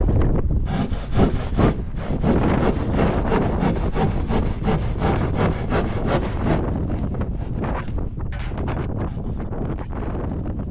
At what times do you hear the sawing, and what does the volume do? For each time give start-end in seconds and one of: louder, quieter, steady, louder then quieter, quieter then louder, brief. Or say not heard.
0.7-9.5 quieter.